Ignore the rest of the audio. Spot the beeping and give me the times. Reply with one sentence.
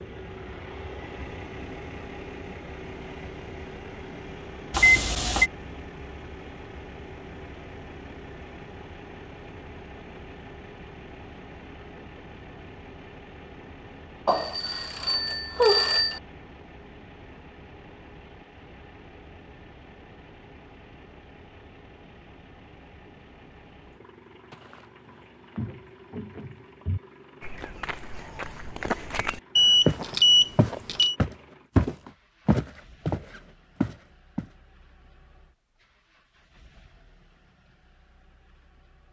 The beeping can be heard from 4.7 to 5.5 s, from 14.2 to 16.2 s and from 29.6 to 31.1 s.